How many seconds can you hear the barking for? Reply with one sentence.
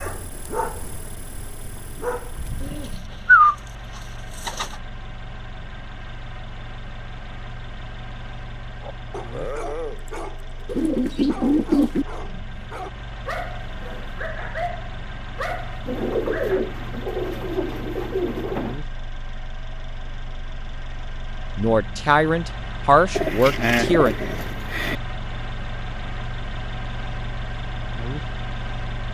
You can hear the barking for 11 seconds altogether.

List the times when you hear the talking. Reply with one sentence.
You can hear the talking from 21.6 to 24.1 s.